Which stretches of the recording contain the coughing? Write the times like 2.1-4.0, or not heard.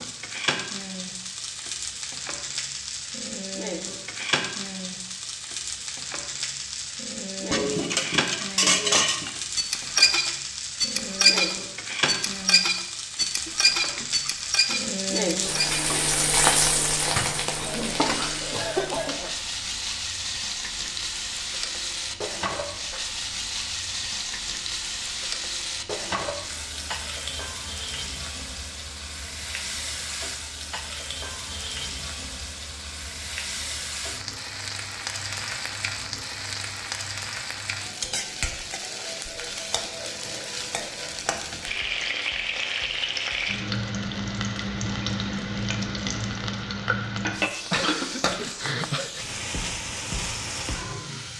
13.4-14.3, 17.6-19.4, 47.6-49.2.